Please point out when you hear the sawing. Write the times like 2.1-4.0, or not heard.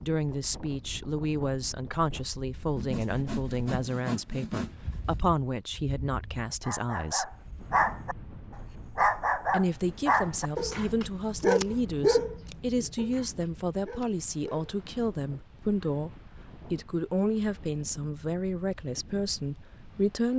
2.8-5.2.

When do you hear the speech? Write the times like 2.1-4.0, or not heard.
0.0-7.3, 9.5-20.3.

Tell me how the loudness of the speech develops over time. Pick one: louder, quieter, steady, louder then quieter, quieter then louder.
steady.